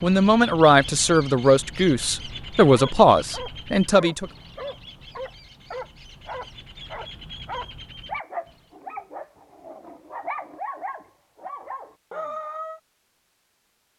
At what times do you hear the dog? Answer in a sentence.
The dog can be heard from 2.7 to 12.8 s.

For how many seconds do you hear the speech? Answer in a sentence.
The speech can be heard for 4 seconds in total.